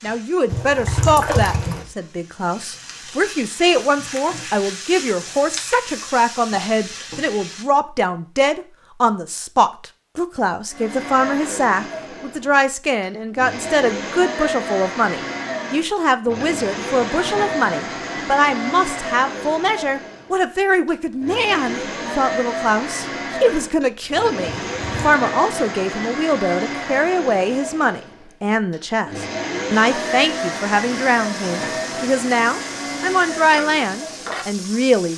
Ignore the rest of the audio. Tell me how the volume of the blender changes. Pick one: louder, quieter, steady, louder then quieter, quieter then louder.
steady.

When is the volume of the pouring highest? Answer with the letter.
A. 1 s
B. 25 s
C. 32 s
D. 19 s
A.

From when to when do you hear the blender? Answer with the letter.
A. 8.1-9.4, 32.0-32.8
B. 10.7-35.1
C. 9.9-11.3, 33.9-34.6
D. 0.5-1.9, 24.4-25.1
B.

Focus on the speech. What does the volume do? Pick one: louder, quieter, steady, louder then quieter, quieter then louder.
steady.